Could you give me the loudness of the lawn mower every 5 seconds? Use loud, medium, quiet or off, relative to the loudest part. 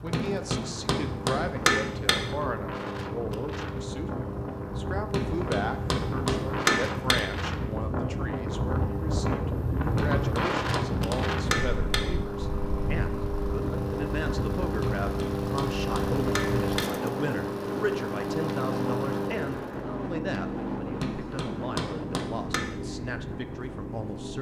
medium, medium, loud, loud, medium.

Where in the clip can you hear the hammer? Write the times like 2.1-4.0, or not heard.
0.1-2.1, 5.1-7.2, 9.9-12.0, 14.8-16.8, 21.0-22.6.